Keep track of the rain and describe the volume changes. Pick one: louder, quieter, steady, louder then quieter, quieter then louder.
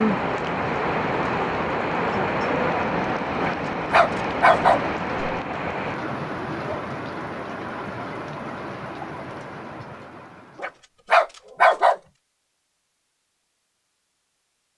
quieter.